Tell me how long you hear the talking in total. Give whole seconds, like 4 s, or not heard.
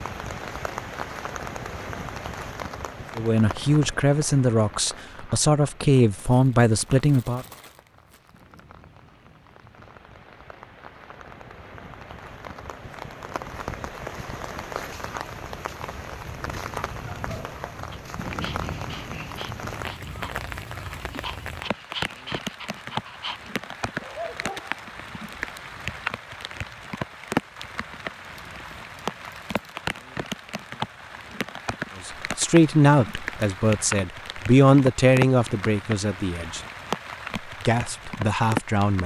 10 s.